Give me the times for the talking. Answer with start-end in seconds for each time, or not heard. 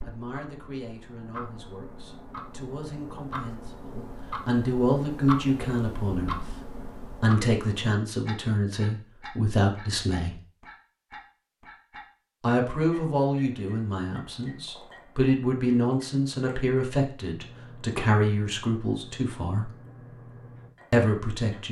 0.0-10.4, 12.4-19.7, 20.9-21.6.